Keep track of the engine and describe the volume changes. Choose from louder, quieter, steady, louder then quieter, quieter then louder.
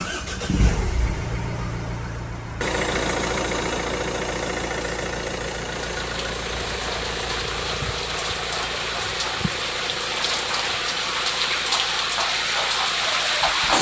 quieter.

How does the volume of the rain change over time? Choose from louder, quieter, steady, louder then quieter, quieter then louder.
louder.